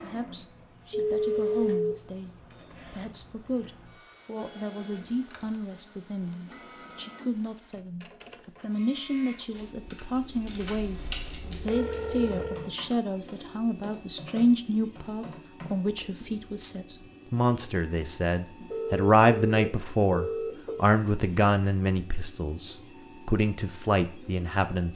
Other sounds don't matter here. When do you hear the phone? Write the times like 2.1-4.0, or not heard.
0.9-1.9, 11.4-12.7, 18.6-20.9.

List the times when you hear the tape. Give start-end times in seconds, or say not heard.
not heard.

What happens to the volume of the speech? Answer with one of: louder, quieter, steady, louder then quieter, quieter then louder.
louder.